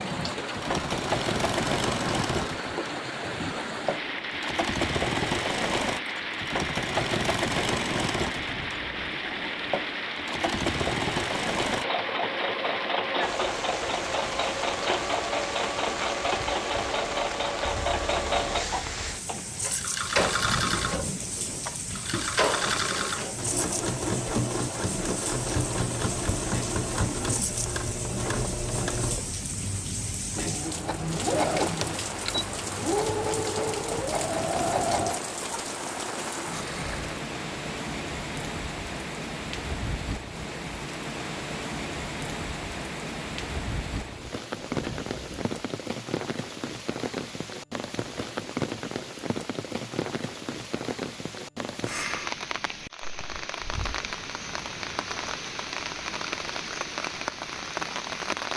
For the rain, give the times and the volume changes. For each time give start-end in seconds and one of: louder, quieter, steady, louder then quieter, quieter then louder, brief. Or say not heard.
0.0-58.5 steady.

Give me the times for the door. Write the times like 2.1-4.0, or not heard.
8.2-9.2, 20.2-21.8, 44.5-45.5.